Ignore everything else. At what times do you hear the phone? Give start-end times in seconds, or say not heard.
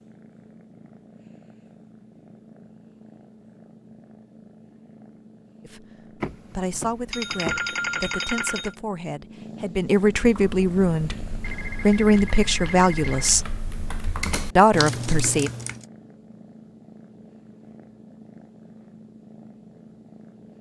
6.2-8.8, 11.4-13.4.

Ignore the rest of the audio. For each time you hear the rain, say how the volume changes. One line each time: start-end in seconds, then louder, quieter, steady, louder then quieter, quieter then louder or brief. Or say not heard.
not heard.